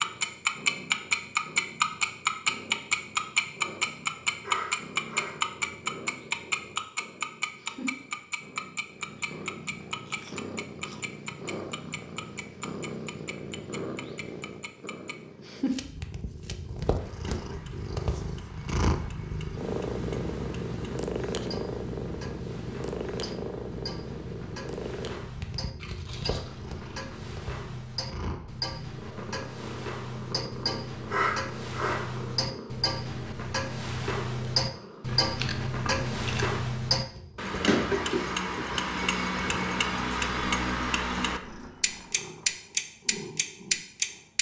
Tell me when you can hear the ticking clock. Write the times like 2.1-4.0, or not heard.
0.0-44.3.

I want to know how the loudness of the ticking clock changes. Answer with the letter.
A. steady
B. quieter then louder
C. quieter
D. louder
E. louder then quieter
B.